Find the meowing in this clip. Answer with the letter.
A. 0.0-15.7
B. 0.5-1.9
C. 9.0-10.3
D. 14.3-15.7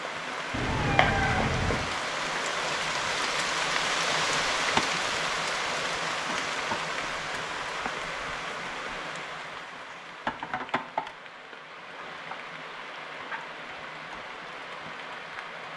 B.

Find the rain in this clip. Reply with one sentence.
The rain can be heard from 0.0 to 15.7 s.